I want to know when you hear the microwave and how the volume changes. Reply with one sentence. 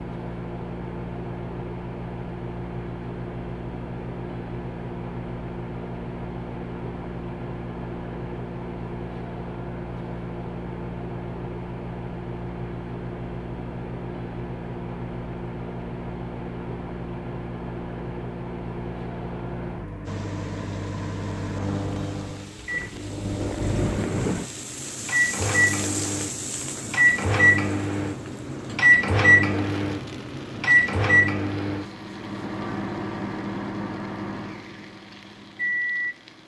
You can hear the microwave from 0.0 to 36.4 s, getting louder.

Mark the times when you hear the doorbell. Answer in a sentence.
The doorbell can't be heard in this clip.